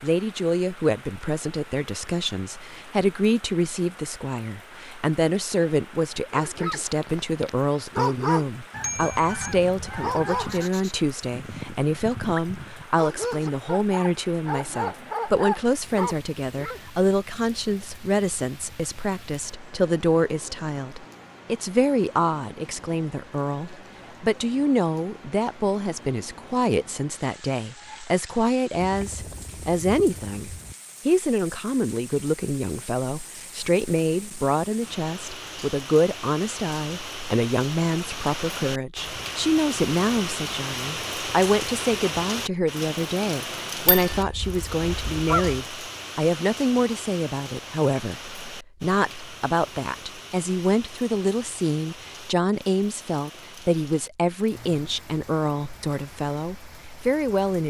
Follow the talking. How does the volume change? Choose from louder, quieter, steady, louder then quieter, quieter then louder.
steady.